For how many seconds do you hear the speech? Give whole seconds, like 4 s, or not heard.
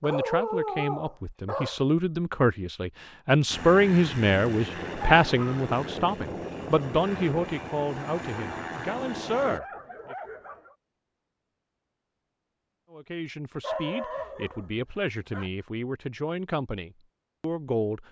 15 s.